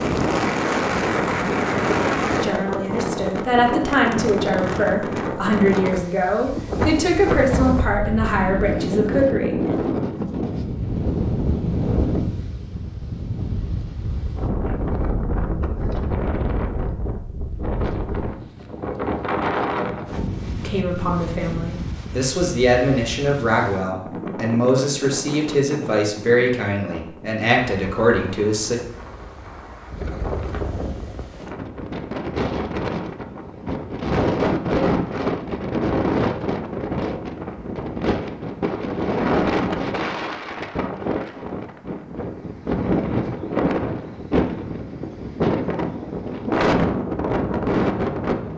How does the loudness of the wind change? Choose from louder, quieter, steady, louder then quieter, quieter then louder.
quieter then louder.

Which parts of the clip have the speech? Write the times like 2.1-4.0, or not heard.
2.4-9.6, 20.6-28.8.